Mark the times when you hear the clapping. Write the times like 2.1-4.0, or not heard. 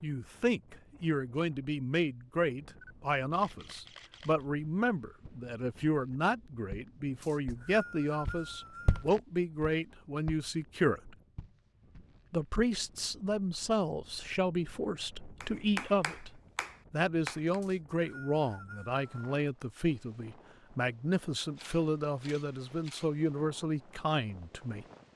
15.4-17.6.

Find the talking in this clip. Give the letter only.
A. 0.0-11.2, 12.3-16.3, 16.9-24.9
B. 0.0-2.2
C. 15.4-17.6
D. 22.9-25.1
A.